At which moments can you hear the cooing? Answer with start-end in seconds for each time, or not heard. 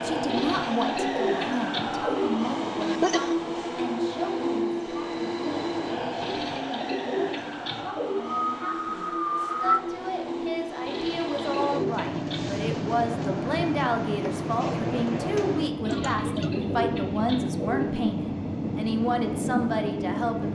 0.2-2.3, 6.2-8.2, 10.8-12.4, 15.8-17.9.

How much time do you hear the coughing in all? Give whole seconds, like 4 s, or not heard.
3 s.